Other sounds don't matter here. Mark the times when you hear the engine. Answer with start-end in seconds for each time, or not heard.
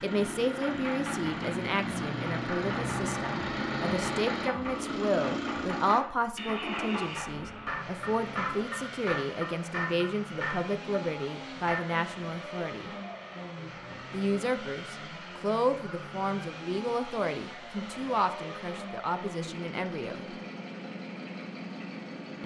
0.0-22.4.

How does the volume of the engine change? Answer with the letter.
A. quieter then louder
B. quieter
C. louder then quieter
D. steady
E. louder
B.